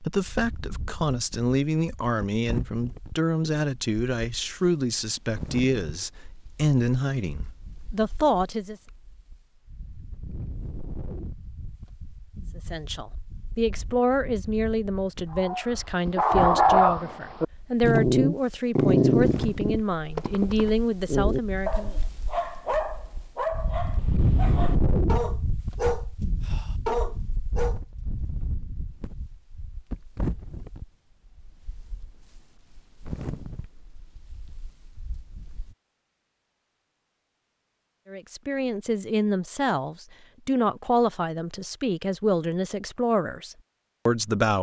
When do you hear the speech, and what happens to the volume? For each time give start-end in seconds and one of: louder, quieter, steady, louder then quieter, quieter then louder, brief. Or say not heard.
0.0-8.8 steady
12.6-21.9 steady
38.1-44.5 steady.